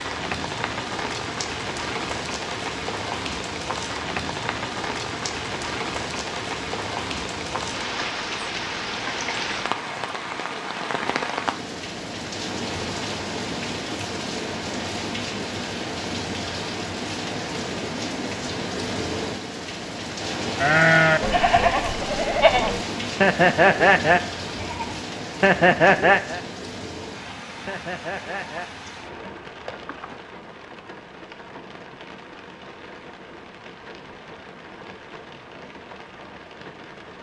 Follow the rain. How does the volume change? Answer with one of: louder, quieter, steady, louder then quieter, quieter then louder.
quieter.